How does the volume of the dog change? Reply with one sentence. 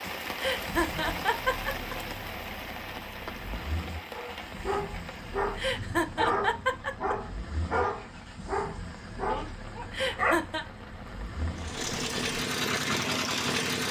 The loudness of the dog stays about the same.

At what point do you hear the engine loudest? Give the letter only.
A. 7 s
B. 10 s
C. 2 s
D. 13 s
D.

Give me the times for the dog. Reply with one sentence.
The dog can be heard from 4.1 to 10.4 s.